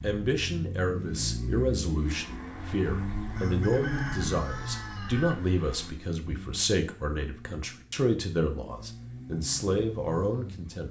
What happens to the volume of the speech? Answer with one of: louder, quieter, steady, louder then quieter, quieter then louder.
steady.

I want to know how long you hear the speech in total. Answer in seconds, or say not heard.
11 s.